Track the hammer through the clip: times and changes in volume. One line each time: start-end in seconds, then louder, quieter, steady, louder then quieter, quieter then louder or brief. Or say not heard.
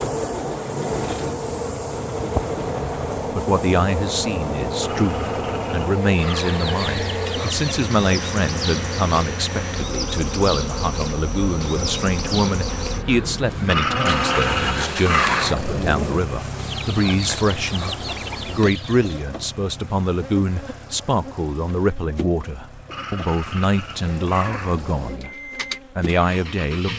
not heard.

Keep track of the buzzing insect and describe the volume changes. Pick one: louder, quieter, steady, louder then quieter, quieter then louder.
quieter.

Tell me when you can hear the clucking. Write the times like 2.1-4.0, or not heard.
6.2-7.7, 16.6-19.2.